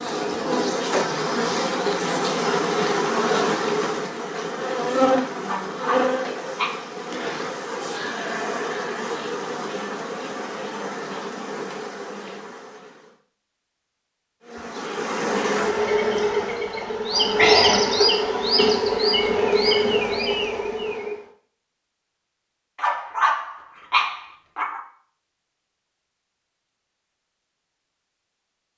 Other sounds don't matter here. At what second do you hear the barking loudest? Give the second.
23 s.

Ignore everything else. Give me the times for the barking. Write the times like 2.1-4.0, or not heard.
5.5-6.9, 22.8-24.8.